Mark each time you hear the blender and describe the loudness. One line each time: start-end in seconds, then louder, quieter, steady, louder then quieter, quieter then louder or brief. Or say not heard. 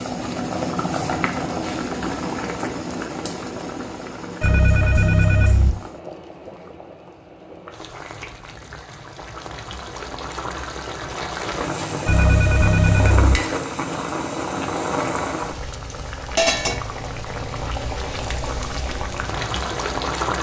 not heard.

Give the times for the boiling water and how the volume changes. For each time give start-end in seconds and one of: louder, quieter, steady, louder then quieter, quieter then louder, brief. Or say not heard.
0.0-20.3 quieter then louder.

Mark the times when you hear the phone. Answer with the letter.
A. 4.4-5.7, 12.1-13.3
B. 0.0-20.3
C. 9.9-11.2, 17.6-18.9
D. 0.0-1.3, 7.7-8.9
A.